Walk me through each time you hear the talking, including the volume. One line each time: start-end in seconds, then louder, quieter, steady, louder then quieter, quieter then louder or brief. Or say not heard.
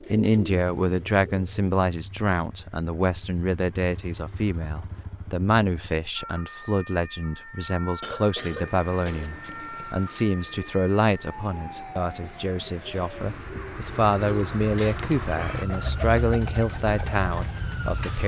0.1-18.2 steady.